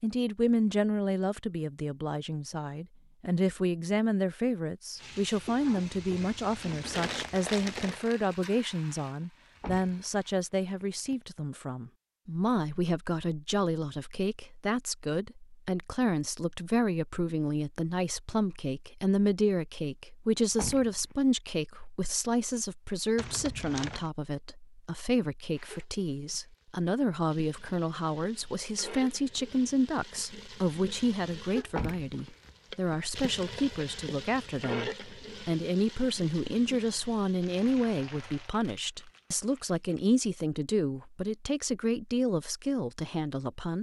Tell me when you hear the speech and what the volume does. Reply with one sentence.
You can hear the speech from 0.0 to 43.7 s, at a steady volume.